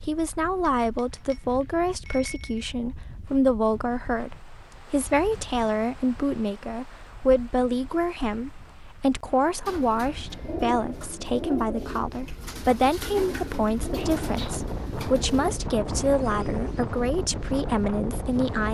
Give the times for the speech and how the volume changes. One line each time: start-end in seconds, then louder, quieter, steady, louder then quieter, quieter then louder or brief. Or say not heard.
0.1-18.6 steady.